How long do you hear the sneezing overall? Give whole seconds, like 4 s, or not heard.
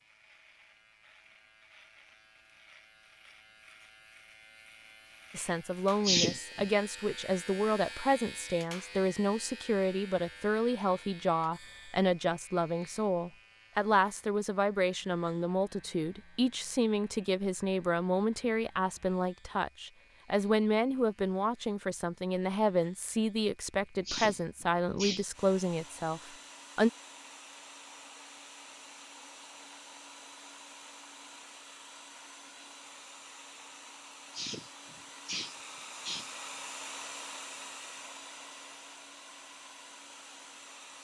4 s.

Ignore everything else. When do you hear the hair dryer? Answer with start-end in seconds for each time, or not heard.
25.3-40.9.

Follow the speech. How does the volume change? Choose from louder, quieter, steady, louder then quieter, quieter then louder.
steady.